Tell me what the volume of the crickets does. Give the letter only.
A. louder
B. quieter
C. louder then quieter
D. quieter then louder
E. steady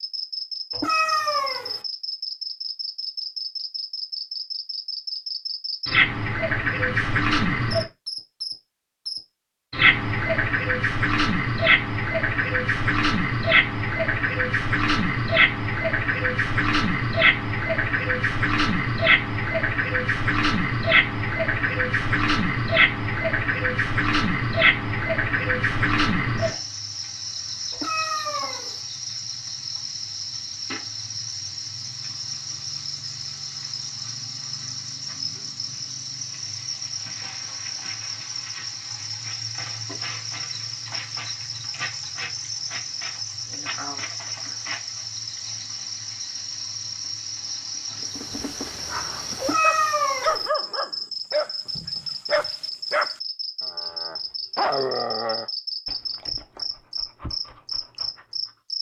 B.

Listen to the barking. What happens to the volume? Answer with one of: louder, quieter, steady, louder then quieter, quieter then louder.
quieter.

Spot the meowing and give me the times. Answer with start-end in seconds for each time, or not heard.
0.7-1.8, 27.7-28.8, 49.4-50.5.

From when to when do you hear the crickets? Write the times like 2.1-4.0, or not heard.
0.0-58.7.